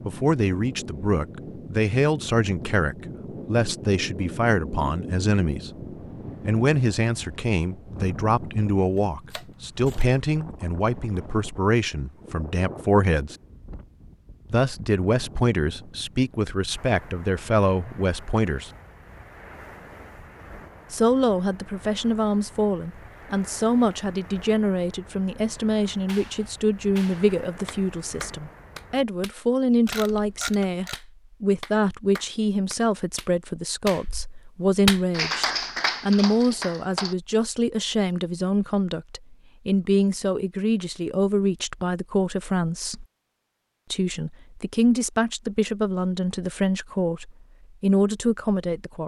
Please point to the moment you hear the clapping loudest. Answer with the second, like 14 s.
35 s.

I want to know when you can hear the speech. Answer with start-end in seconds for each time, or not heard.
0.0-5.7, 6.4-13.3, 14.5-18.7, 20.9-43.0, 43.9-49.0.